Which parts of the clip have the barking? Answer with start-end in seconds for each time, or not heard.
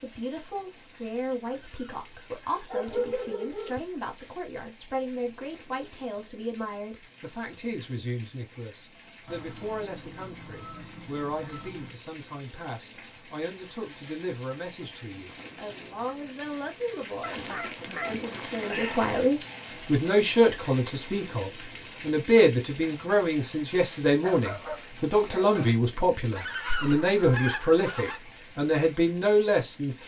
2.6-3.8, 24.2-25.7.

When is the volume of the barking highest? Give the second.
3 s.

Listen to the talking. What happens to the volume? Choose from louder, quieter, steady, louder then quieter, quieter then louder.
louder.